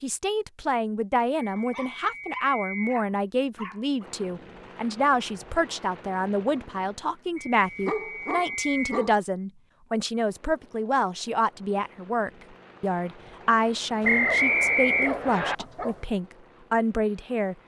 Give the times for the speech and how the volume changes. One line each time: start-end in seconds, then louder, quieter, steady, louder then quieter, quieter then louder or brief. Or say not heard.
0.0-17.6 steady.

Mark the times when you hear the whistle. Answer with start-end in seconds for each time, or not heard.
1.4-3.0, 7.3-9.0, 14.0-15.6.